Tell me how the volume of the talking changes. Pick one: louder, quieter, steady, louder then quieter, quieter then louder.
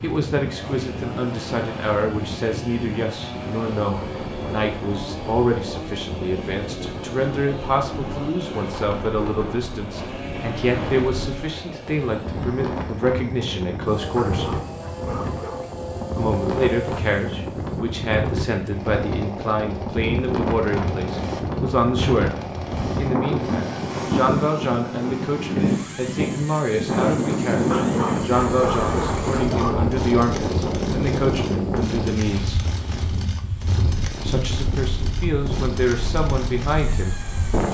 steady.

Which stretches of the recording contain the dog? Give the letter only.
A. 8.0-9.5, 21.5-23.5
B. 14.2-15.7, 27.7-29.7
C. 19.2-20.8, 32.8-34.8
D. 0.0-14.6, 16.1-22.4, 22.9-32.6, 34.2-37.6
B.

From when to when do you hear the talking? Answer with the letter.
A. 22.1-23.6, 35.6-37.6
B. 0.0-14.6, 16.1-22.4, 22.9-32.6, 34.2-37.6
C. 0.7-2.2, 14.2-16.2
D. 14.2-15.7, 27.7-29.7
B.